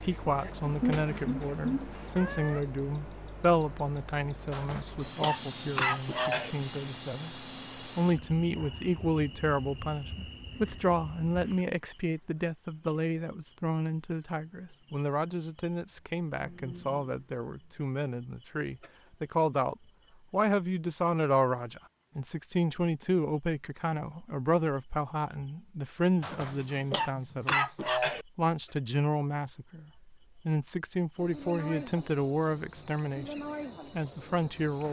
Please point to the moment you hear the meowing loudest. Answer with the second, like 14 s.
1 s.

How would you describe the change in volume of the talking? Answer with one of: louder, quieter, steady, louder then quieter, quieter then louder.
steady.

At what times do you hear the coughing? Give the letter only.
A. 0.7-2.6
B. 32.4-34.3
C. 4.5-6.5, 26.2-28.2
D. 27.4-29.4
C.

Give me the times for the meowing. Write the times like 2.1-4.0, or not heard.
0.7-2.6.